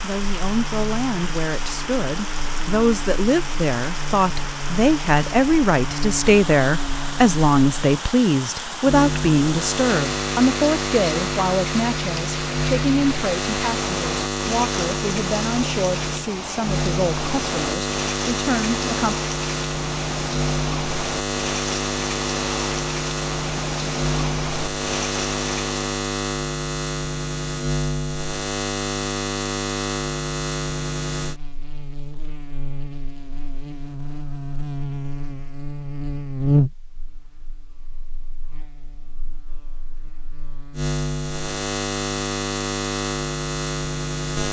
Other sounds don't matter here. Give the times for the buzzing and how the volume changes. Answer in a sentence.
You can hear the buzzing from 0.1 to 44.4 s, getting louder.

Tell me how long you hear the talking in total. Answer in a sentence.
The talking can be heard for 19 seconds in total.